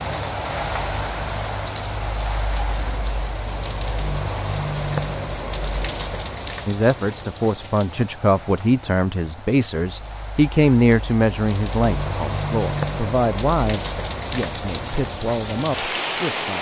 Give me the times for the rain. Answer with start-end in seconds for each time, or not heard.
0.0-16.5.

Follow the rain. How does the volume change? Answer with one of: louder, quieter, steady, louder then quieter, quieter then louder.
quieter then louder.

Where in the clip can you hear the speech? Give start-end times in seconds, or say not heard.
6.7-16.5.